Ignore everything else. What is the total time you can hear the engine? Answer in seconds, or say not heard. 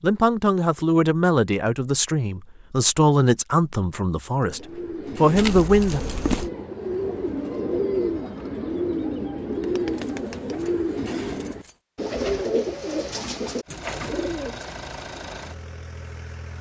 3 s.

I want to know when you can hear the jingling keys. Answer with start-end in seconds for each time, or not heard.
5.3-6.5, 9.9-11.8.